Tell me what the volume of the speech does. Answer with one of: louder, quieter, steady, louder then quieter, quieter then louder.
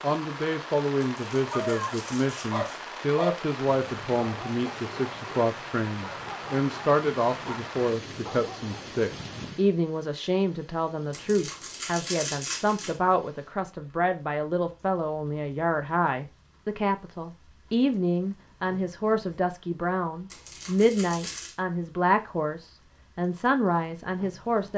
steady.